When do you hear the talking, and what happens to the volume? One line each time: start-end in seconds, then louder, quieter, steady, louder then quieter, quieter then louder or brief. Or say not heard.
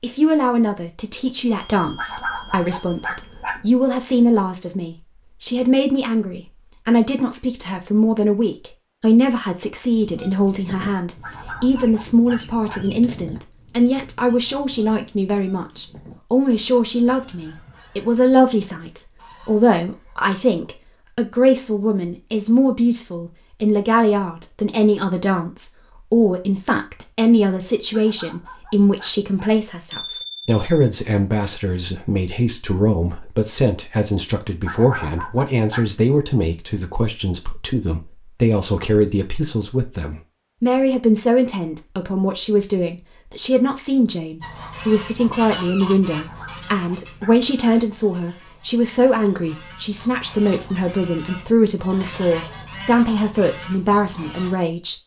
0.0-55.0 steady.